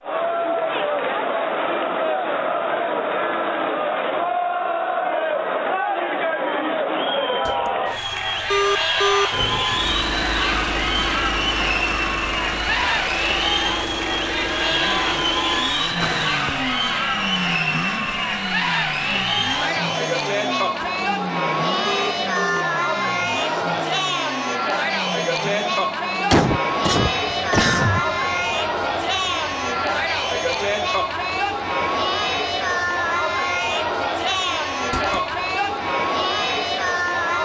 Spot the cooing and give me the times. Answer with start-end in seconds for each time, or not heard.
not heard.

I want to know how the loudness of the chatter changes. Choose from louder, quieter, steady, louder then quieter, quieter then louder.
steady.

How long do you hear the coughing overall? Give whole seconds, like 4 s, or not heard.
2 s.